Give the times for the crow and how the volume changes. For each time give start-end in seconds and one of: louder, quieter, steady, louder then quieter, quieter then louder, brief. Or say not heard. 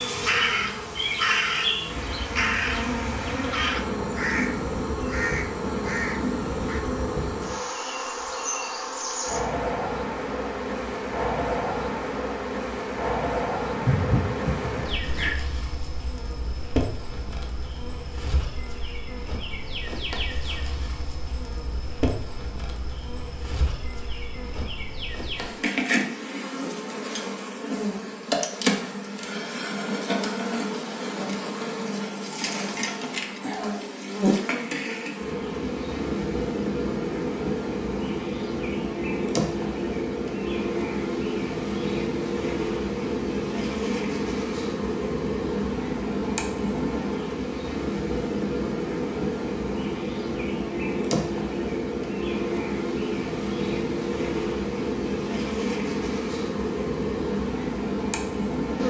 0.0-6.8 quieter
13.8-15.3 brief.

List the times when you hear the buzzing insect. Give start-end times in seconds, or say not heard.
0.0-58.8.